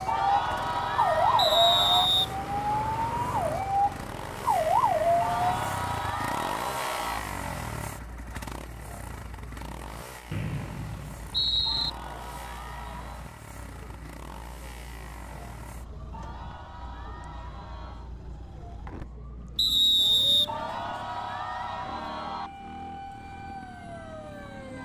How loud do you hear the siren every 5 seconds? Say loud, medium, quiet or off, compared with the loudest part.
loud, medium, quiet, quiet, quiet.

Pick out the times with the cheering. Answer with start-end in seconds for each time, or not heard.
0.1-2.1, 5.2-7.2, 11.7-13.3, 16.1-18.1, 20.4-22.5.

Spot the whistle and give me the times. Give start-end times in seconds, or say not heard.
1.4-2.3, 10.3-11.9, 19.6-20.5.